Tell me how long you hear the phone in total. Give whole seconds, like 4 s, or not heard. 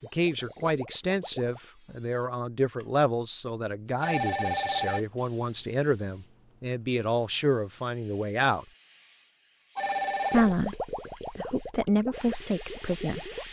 2 s.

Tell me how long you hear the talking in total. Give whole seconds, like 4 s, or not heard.
12 s.